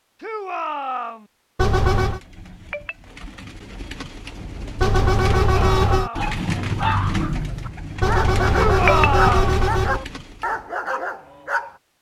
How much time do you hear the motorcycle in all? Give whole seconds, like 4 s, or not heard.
not heard.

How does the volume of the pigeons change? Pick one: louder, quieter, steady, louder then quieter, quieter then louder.
louder then quieter.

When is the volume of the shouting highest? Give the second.
9 s.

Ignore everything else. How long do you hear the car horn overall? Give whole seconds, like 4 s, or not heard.
4 s.